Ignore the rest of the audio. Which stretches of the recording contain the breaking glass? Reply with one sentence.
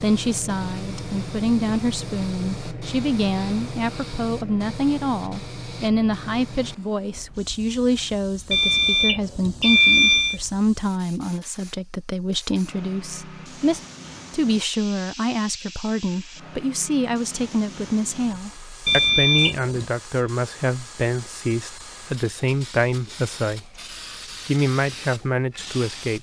The breaking glass can't be heard in this clip.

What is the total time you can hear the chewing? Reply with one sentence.
You can't hear the chewing here.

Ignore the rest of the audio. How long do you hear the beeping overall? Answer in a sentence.
The beeping can be heard for 3 seconds in total.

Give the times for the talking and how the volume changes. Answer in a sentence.
You can hear the talking from 0.0 to 23.7 s, at a steady volume; and briefly from 24.4 to 26.1 s.